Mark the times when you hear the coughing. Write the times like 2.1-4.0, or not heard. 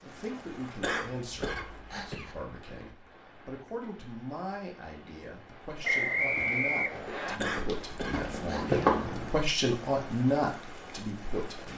0.8-2.4, 7.3-8.8.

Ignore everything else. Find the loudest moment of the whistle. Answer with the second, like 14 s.
6 s.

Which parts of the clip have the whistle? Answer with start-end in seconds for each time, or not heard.
5.8-7.3.